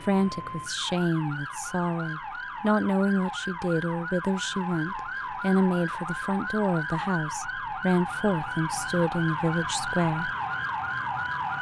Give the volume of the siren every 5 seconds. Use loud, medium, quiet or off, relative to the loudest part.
medium, loud, loud.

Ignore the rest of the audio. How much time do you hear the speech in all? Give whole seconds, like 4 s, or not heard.
10 s.